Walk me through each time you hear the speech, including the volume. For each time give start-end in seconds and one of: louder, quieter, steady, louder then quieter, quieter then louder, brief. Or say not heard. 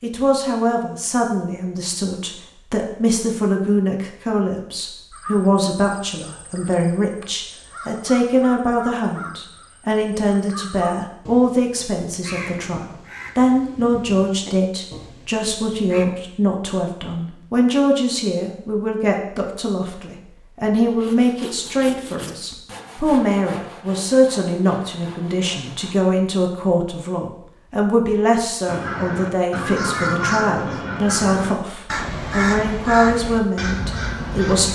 0.0-34.6 steady.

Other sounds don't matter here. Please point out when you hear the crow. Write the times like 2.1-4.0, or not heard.
5.1-16.1, 28.6-34.6.